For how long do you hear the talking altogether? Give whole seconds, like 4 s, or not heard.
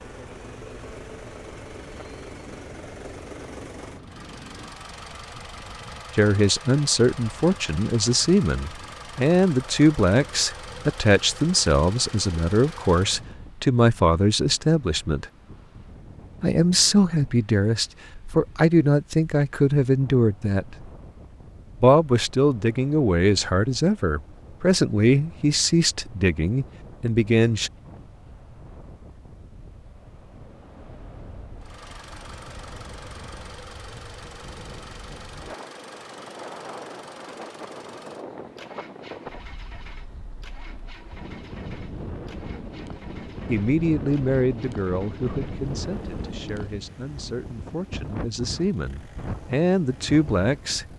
27 s.